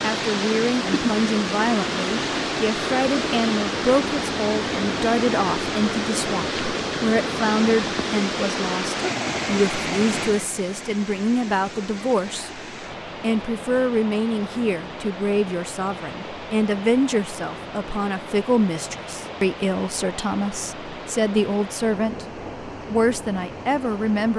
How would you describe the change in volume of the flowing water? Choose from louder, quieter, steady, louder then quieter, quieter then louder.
quieter.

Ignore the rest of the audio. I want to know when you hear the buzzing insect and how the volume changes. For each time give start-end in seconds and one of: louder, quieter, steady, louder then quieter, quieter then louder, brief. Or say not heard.
not heard.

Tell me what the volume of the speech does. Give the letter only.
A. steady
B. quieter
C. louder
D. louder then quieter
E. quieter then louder
A.